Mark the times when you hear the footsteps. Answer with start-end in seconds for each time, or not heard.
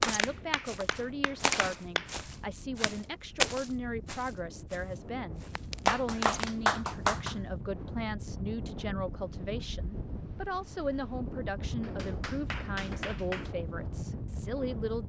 0.0-6.5.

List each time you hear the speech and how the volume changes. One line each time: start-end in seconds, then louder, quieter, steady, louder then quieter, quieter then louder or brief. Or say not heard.
0.1-15.0 steady.